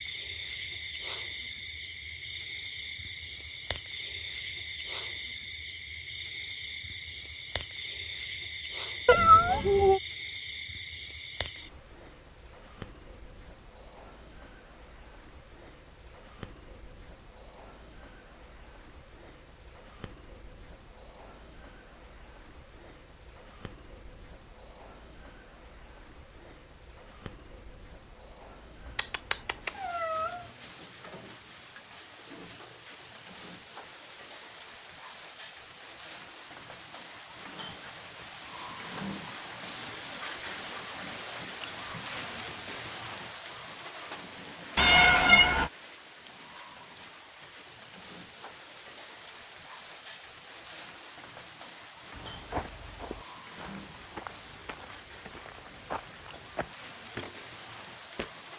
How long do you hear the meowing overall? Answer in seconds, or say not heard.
3 s.